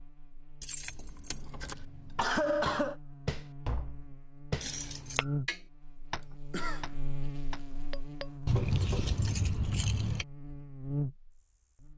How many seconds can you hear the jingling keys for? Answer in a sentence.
The jingling keys can be heard for 4 seconds in total.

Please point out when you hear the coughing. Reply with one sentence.
You can hear the coughing from 1.6 to 3.0 s and from 6.5 to 7.0 s.